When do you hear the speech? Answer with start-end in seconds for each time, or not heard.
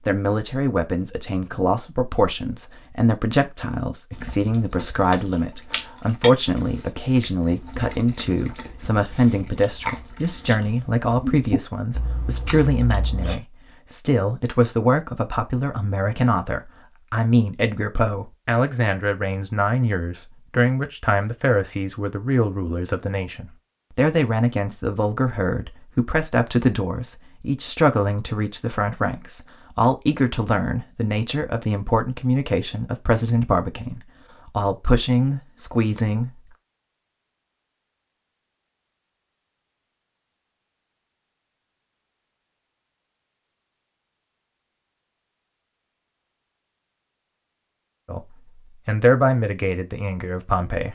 0.1-36.4, 48.0-50.9.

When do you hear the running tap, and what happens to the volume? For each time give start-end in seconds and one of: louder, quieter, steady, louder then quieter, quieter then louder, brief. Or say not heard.
not heard.